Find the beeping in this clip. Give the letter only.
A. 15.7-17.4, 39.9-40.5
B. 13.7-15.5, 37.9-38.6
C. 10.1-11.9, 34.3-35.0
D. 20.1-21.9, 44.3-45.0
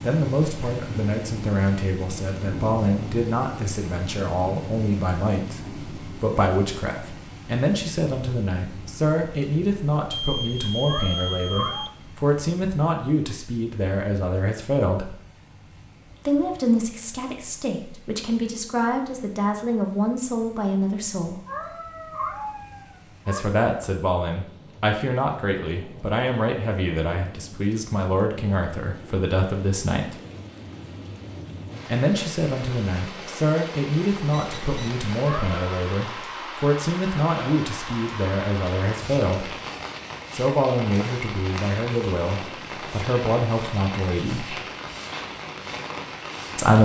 C.